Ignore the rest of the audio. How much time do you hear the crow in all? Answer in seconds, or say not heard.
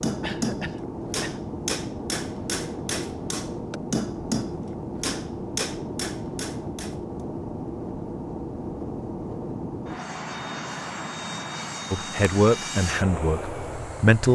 not heard.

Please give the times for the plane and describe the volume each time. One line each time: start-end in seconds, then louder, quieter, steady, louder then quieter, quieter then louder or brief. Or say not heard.
0.0-14.3 steady.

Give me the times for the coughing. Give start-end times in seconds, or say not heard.
0.2-1.4.